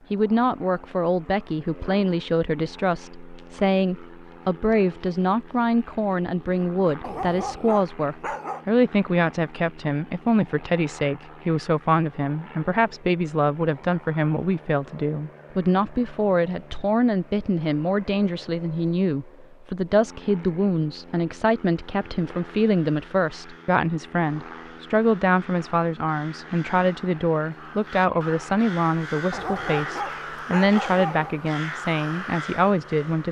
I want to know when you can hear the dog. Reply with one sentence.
You can hear the dog from 7.0 to 8.7 s and from 29.3 to 31.4 s.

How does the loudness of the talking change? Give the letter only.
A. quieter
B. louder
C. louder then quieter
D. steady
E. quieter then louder
D.